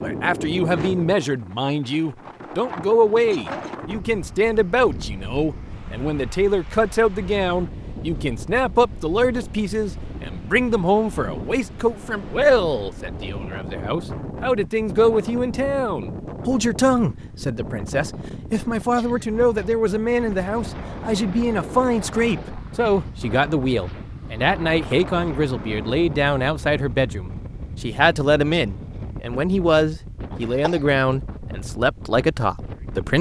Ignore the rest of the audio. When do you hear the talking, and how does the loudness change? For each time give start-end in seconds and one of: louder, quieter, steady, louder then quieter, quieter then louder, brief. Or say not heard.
0.0-33.1 steady.